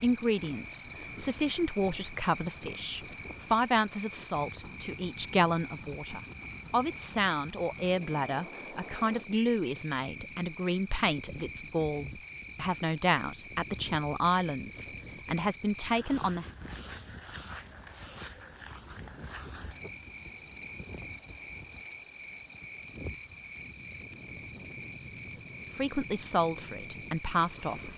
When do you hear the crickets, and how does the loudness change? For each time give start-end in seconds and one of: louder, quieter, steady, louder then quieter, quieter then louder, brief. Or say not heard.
0.0-27.9 steady.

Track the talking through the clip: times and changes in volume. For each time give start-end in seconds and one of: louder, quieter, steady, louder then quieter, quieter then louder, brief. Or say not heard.
0.0-16.4 steady
25.8-27.9 brief.